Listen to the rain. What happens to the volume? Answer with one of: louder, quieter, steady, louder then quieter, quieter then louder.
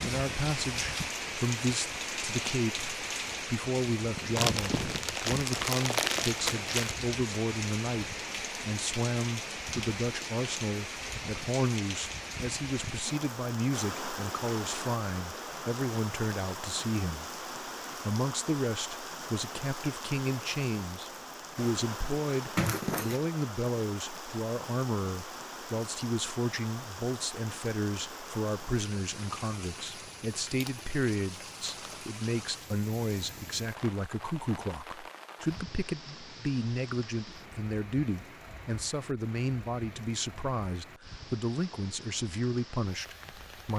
quieter.